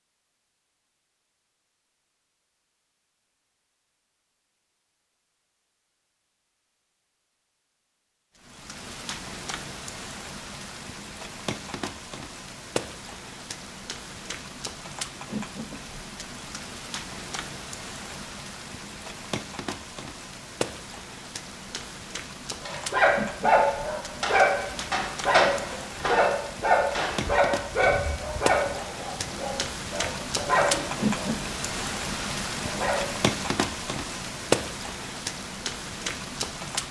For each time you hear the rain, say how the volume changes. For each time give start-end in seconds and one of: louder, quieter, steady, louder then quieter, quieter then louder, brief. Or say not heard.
8.3-36.8 louder.